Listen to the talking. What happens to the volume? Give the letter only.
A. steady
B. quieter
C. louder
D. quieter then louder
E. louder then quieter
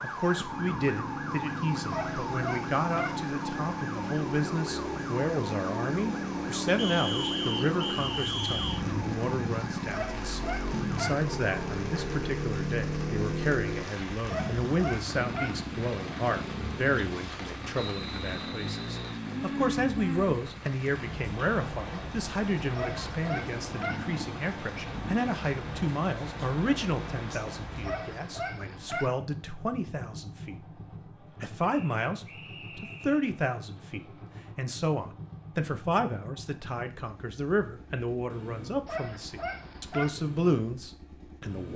A.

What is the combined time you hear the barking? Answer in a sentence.
The barking can be heard for 8 seconds in total.